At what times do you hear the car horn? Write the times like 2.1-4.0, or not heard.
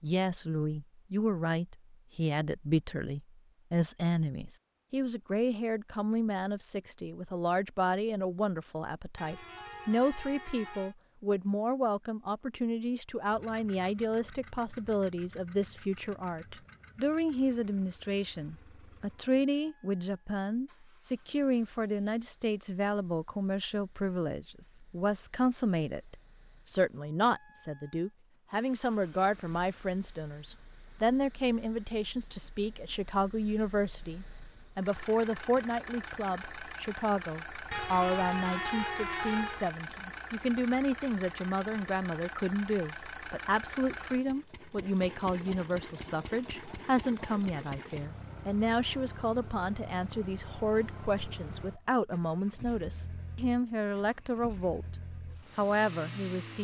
9.2-10.9, 37.7-39.7.